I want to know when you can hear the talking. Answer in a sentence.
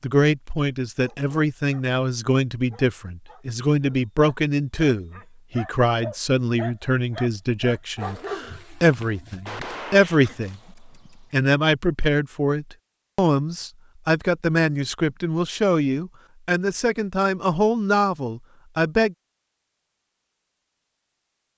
You can hear the talking from 0.0 to 19.1 s.